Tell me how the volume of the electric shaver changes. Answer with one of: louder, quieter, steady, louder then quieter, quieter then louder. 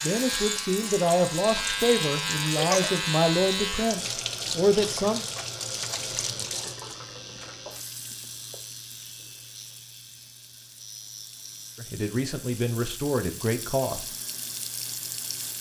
quieter.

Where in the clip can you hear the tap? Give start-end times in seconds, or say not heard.
0.0-15.5.